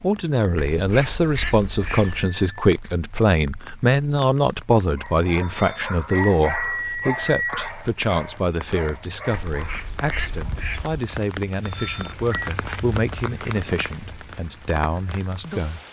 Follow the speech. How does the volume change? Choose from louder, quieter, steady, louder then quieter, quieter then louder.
quieter.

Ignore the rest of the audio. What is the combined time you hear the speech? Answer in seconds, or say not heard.
16 s.